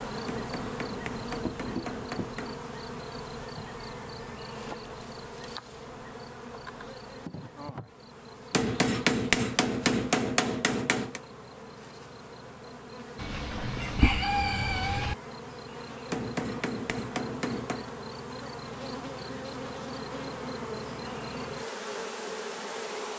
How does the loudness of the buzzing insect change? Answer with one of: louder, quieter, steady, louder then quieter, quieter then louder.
quieter then louder.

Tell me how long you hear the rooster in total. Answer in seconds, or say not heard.
2 s.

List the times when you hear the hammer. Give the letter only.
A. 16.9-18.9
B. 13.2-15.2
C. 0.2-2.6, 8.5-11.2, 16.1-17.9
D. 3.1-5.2
C.